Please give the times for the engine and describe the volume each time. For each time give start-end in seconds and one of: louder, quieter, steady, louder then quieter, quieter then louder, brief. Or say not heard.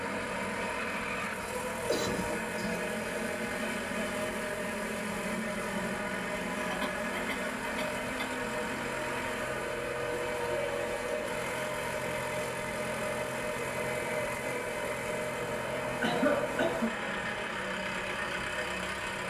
0.0-19.2 steady.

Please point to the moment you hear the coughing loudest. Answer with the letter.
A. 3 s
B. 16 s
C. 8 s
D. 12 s
B.